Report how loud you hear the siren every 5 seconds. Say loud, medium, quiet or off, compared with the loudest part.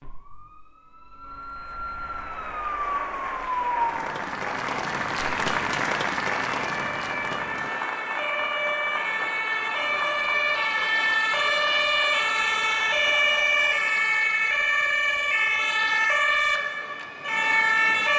medium, medium, loud, loud.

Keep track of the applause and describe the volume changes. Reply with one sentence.
The volume of the applause goes up, then down.